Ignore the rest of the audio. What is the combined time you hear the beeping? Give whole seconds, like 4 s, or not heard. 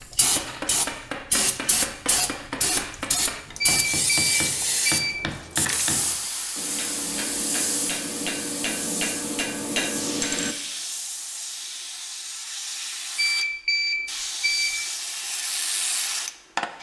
3 s.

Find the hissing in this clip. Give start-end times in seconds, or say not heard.
0.0-16.7.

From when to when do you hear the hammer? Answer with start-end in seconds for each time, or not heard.
0.0-10.6.